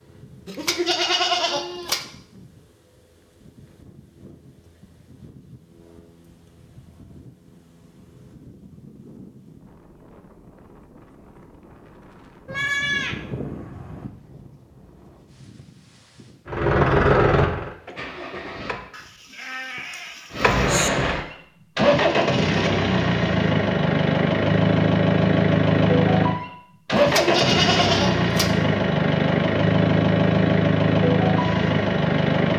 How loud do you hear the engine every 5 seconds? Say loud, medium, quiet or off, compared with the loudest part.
off, off, off, loud, loud, loud, loud.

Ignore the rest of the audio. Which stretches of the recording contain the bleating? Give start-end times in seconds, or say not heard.
0.5-2.0, 12.4-14.1, 18.9-20.9, 26.9-28.6.